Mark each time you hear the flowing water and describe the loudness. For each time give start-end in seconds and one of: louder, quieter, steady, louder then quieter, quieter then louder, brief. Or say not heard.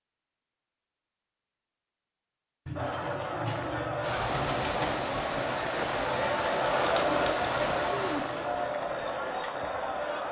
4.0-10.2 quieter.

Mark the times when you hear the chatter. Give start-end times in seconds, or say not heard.
2.8-10.2.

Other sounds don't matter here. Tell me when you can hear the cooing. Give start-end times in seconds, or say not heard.
2.6-5.1.